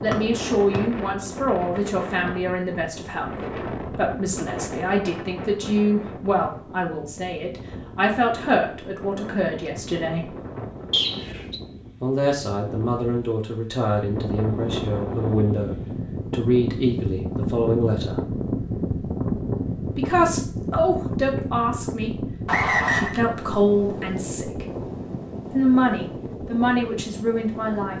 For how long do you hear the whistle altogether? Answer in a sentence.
You can hear the whistle for 2 seconds altogether.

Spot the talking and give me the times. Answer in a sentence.
You can hear the talking from 0.0 to 10.3 s, from 12.0 to 18.2 s, from 19.9 to 24.6 s and from 25.5 to 27.9 s.